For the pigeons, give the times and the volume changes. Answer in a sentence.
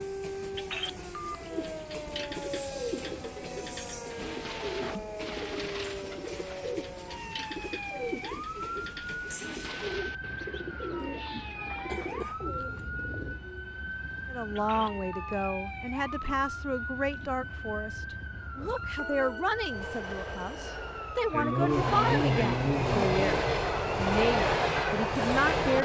You can hear the pigeons from 1.5 to 13.4 s, at a steady volume.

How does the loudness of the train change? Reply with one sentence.
The loudness of the train goes down, then up.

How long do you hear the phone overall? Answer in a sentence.
You can hear the phone for 2 seconds altogether.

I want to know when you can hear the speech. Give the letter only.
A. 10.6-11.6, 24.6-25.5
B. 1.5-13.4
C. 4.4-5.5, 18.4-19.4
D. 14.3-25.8
D.